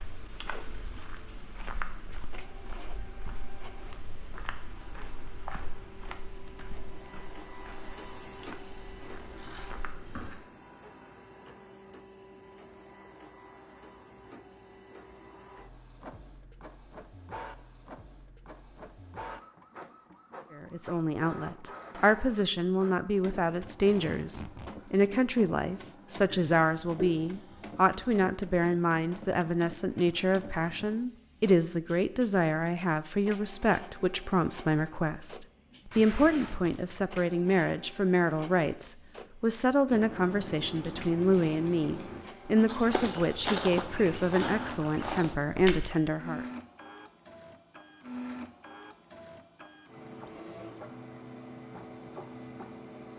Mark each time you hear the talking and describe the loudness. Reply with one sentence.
You can hear the talking from 20.6 to 46.5 s, at a steady volume.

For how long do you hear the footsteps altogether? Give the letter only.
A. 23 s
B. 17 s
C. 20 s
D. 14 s
D.